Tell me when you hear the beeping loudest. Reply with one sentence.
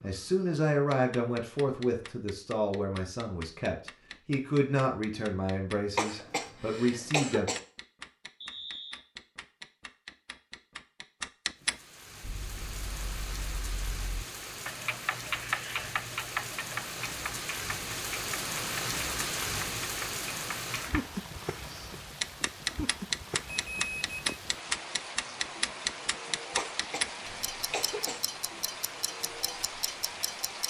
The loudest moment of the beeping is at 24 seconds.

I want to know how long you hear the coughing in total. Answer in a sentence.
You can hear the coughing for 3 seconds altogether.